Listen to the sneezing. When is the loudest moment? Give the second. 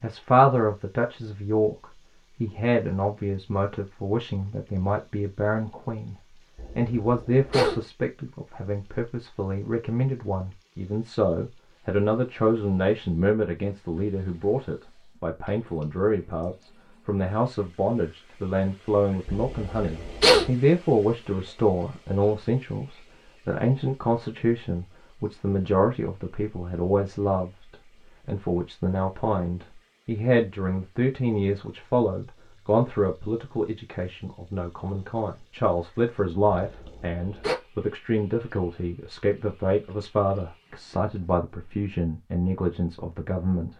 20 s.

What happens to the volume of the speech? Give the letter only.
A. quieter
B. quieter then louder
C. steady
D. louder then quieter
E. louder
C.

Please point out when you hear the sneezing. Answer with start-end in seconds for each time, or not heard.
6.5-7.8, 19.2-20.5, 36.5-37.5.